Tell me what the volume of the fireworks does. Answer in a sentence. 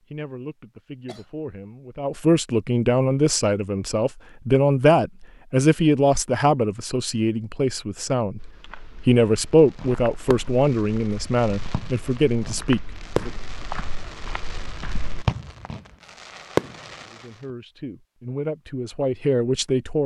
The loudness of the fireworks goes up.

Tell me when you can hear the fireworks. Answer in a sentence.
The fireworks can be heard from 9.7 to 17.2 s.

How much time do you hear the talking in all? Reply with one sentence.
The talking can be heard for 16 seconds in total.